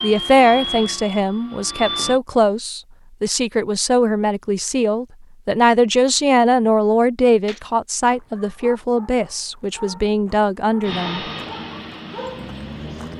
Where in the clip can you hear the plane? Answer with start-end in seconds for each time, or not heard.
0.0-2.2, 10.8-13.1.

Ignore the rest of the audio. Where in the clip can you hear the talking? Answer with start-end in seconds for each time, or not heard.
0.0-11.2.